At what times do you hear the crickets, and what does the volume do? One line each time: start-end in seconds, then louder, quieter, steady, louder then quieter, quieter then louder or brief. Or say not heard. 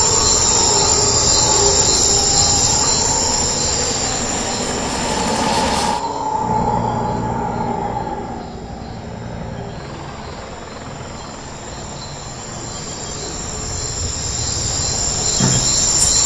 0.0-16.2 quieter then louder.